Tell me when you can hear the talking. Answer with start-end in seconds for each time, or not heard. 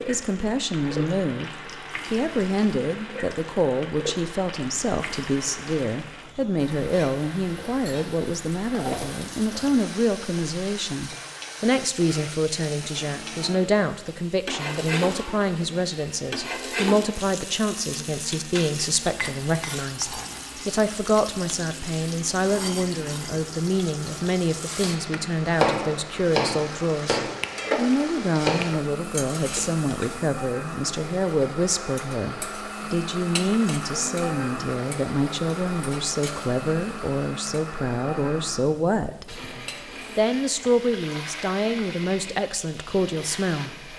0.1-43.9.